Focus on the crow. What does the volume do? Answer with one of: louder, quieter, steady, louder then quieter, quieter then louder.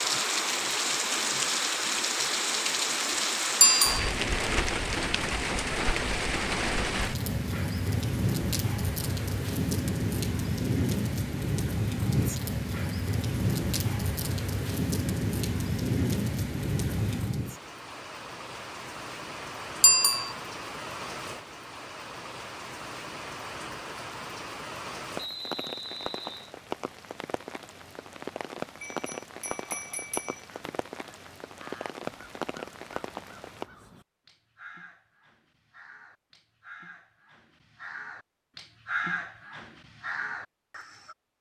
louder.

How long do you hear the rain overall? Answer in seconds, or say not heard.
34 s.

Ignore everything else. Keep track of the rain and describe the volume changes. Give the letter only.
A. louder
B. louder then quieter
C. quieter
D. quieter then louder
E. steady
C.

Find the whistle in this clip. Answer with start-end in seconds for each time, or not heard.
25.1-26.5.